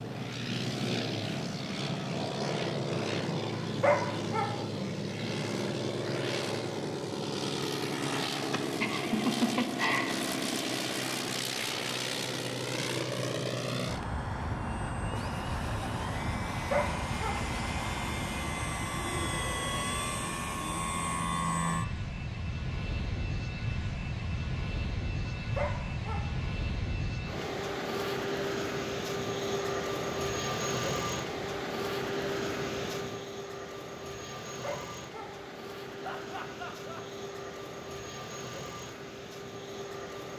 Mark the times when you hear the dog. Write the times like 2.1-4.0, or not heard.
3.5-4.5, 16.5-17.4, 25.4-26.2, 34.5-35.4.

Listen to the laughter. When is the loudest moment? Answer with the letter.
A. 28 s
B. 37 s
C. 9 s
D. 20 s
C.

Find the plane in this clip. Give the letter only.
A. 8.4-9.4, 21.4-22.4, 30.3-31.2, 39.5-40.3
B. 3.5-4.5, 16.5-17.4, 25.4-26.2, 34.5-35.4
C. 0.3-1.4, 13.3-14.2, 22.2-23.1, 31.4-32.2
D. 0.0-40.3
D.